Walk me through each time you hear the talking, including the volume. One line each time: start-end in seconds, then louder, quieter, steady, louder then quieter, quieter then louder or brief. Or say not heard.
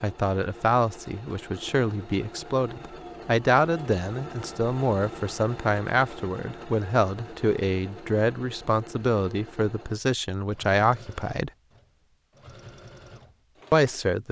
0.0-11.5 steady
13.7-14.2 brief.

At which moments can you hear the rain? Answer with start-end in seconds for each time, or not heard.
not heard.